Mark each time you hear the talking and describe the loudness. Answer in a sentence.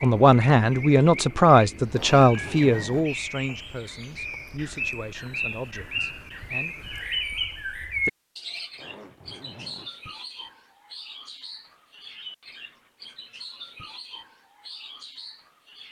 The talking can be heard from 0.0 to 6.8 s, getting quieter.